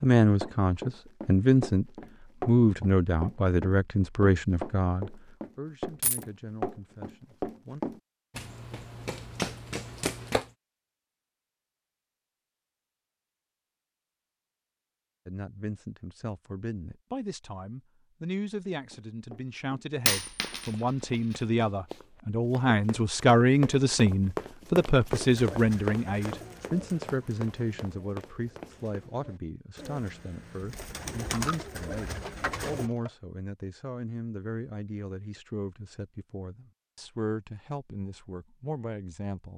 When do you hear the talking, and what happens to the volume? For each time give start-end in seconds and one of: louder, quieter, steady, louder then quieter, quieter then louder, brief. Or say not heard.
0.0-1.9 brief
2.5-7.8 quieter
15.2-39.5 louder then quieter.